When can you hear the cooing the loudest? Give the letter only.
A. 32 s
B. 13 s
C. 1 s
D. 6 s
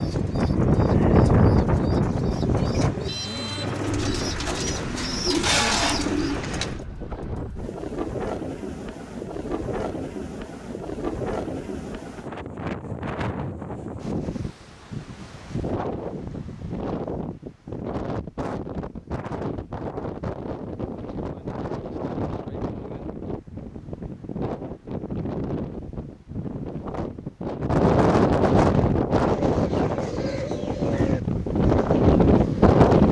D.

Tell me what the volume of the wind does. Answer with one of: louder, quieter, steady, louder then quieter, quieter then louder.
quieter then louder.